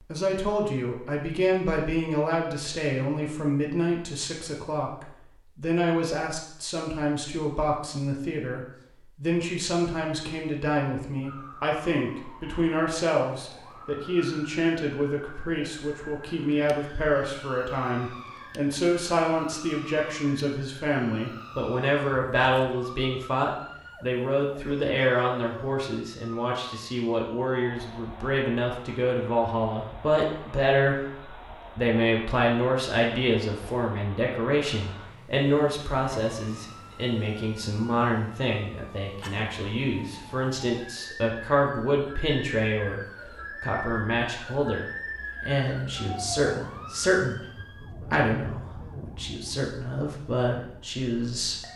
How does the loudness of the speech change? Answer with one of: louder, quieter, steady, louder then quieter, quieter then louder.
steady.